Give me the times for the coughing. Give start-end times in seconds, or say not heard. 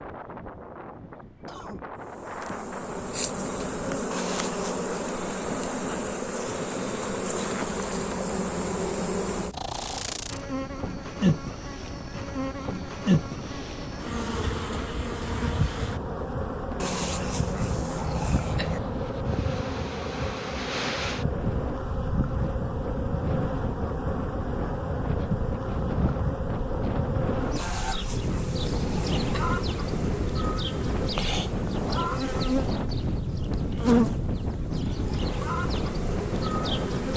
1.4-1.9.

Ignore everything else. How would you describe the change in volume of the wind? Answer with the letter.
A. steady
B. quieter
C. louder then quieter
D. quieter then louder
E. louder
E.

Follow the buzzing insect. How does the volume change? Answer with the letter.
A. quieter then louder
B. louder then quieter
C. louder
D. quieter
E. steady
E.